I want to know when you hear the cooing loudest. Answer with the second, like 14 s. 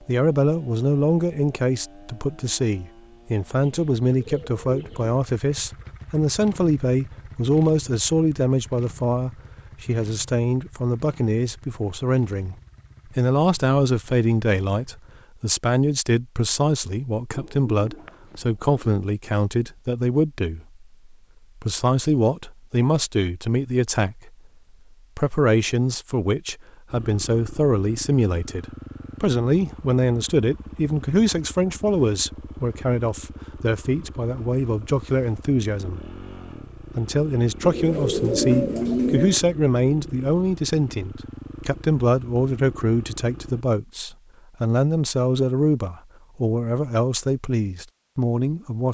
39 s.